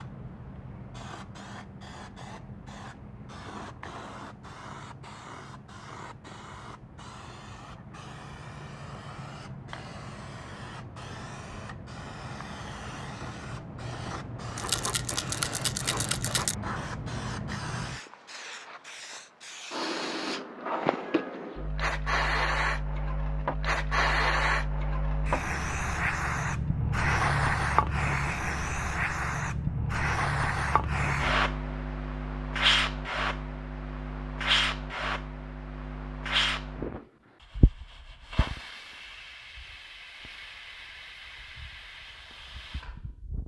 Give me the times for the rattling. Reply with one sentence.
You can hear the rattling from 14.6 to 16.6 s.